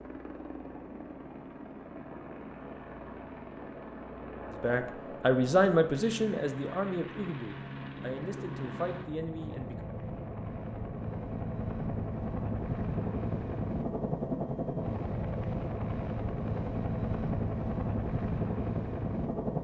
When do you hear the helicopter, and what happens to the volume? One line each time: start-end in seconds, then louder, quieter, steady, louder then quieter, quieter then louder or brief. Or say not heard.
0.0-19.5 louder.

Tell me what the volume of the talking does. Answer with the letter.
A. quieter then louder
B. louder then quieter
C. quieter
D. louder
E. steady
C.